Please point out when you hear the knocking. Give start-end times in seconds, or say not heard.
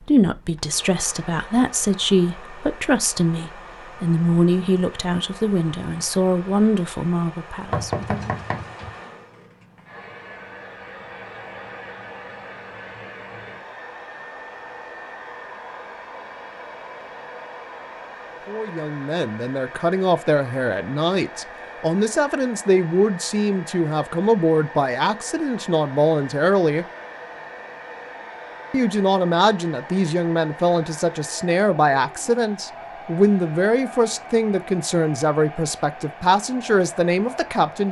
7.7-9.0.